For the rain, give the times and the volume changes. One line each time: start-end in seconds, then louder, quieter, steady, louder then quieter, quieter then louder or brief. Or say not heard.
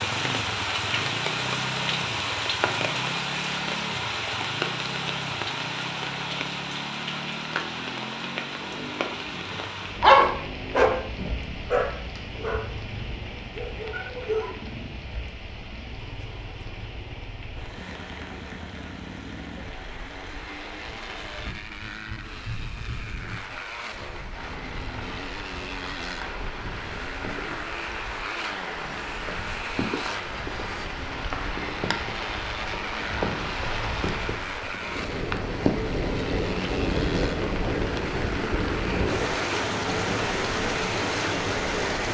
0.0-42.0 quieter then louder.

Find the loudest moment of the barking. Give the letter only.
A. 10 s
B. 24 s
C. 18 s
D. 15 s
A.